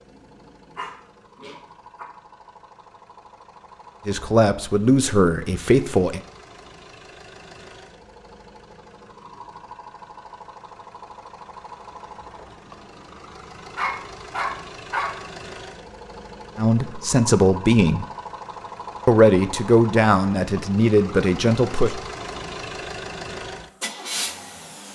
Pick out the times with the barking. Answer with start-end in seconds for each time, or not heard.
0.1-2.0, 13.8-15.1.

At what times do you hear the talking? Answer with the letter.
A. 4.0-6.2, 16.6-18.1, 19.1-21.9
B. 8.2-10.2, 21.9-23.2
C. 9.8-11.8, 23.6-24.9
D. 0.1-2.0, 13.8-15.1
A.